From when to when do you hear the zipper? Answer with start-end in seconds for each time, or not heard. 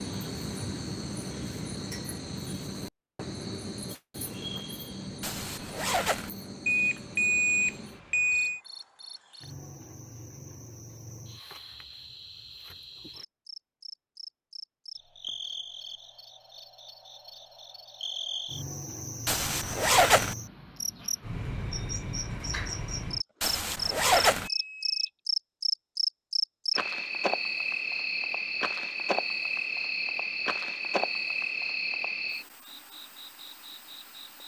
5.2-6.3, 19.2-20.4, 23.4-24.5.